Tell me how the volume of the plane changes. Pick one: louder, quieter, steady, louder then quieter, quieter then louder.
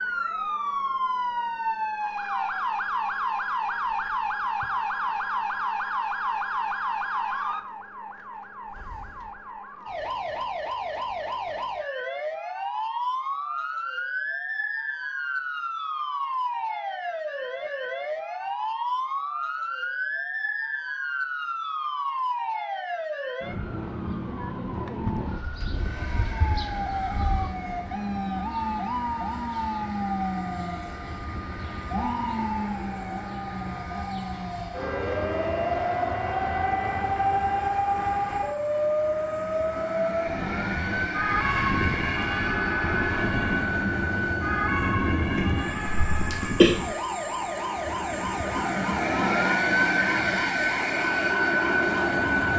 louder.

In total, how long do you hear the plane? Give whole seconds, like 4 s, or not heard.
27 s.